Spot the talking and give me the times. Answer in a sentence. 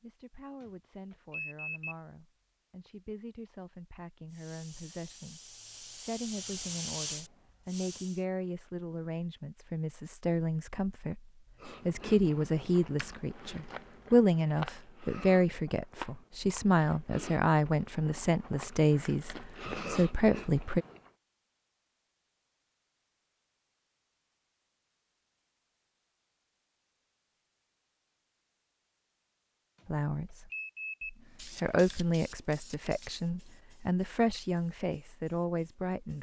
The talking can be heard from 0.0 to 20.9 s and from 29.9 to 36.1 s.